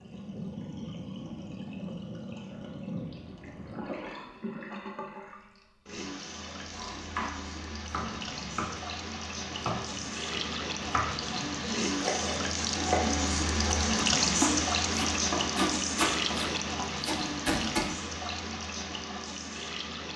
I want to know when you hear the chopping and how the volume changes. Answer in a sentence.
The chopping can be heard from 6.7 to 17.9 s, getting louder.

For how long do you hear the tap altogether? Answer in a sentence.
You can hear the tap for 20 seconds altogether.